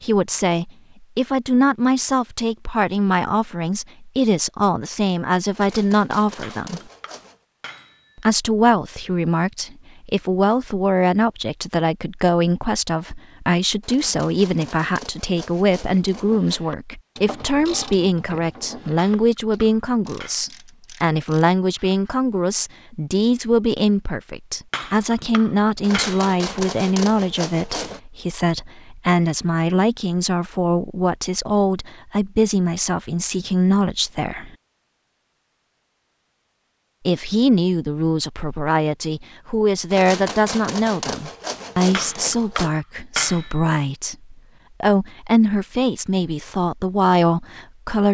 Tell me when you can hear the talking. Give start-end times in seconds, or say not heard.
0.0-6.8, 8.2-34.5, 37.0-48.0.